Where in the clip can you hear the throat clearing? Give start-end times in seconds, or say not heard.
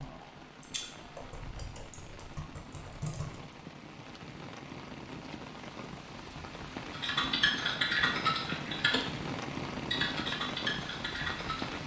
not heard.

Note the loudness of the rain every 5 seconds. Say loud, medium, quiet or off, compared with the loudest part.
medium, loud, loud.